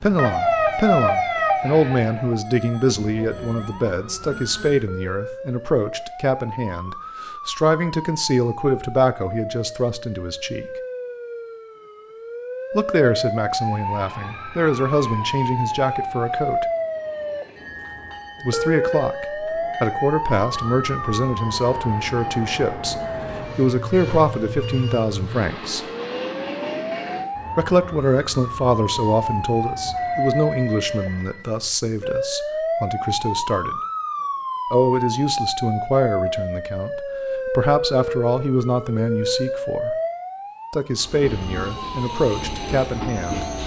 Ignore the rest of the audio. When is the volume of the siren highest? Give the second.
1 s.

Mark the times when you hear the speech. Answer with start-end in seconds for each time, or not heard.
0.0-10.7, 12.8-16.6, 18.4-25.9, 27.6-33.8, 34.7-40.0, 40.7-43.5.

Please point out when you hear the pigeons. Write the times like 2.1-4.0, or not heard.
not heard.